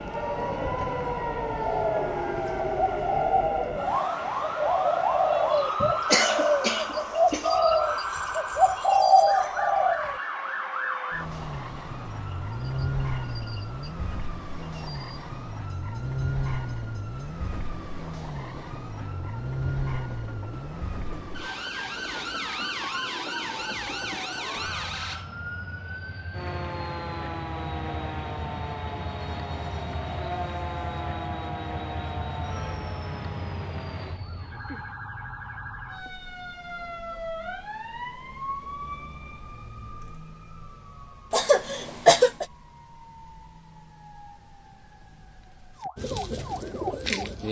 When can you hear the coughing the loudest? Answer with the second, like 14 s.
42 s.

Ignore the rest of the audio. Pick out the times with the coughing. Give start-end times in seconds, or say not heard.
6.1-7.5, 41.3-42.5.